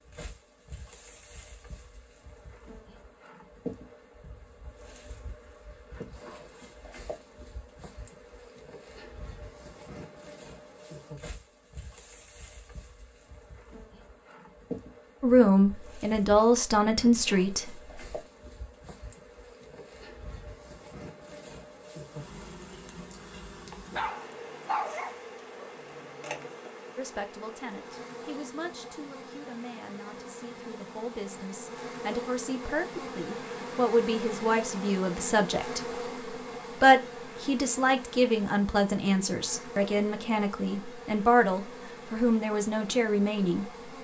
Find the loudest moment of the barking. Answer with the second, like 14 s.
25 s.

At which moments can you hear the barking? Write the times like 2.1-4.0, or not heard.
23.9-26.5.